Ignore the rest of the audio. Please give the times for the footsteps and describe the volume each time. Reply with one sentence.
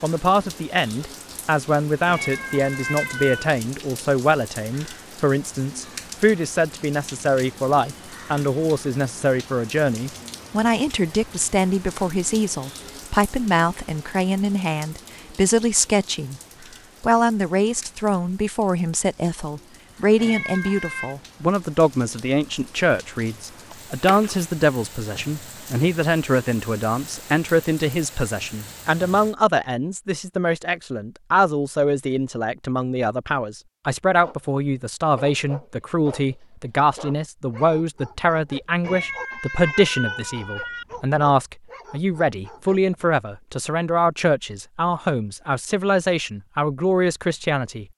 You can't hear the footsteps here.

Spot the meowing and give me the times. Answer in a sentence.
You can hear the meowing from 2.0 to 3.5 s, from 20.1 to 21.1 s and from 38.8 to 40.9 s.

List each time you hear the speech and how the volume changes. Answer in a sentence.
You can hear the speech from 0.0 to 16.4 s, at a steady volume; and from 17.0 to 47.9 s, at a steady volume.